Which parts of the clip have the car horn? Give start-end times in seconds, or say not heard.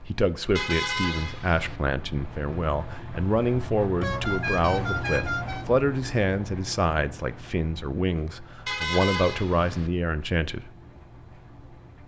0.6-1.8, 4.0-5.7, 8.7-9.9.